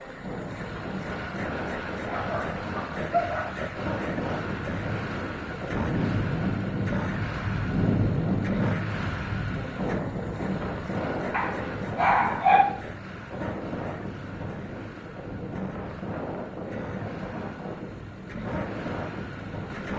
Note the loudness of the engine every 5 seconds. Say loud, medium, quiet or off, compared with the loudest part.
loud, loud, medium, medium.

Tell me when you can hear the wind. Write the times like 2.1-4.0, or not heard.
0.0-19.9.